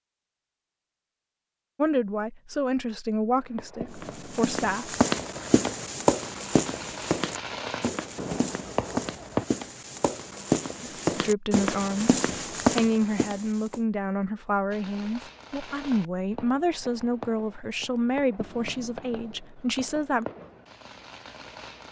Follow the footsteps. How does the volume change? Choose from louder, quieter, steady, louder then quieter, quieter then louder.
quieter then louder.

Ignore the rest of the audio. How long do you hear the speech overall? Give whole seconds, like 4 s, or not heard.
13 s.